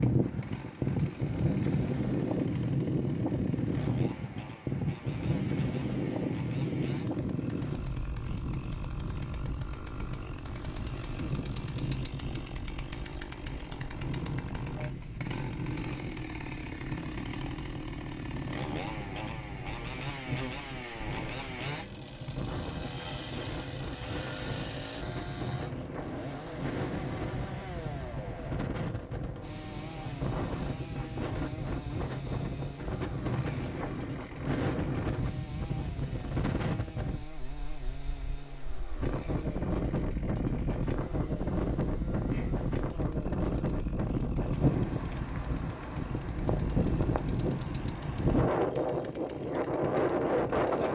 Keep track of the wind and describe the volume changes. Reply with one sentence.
The volume of the wind goes down, then up.